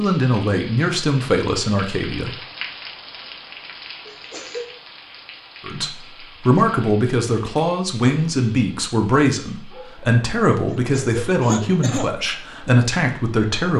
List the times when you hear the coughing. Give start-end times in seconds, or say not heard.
4.0-4.7, 10.7-12.1.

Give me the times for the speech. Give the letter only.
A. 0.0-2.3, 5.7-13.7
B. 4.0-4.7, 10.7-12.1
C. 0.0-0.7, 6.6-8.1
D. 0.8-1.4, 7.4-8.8
A.